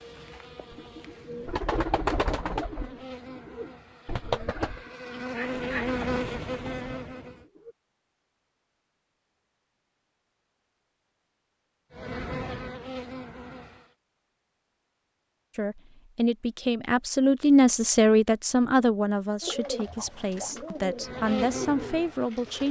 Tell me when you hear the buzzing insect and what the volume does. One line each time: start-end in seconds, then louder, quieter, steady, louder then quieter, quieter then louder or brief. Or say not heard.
0.0-7.5 louder
11.9-13.9 brief
20.9-22.6 brief.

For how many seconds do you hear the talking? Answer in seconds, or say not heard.
7 s.